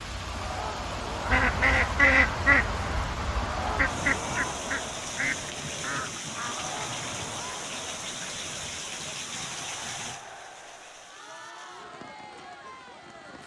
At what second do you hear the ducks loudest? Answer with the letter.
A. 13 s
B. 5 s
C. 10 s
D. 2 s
D.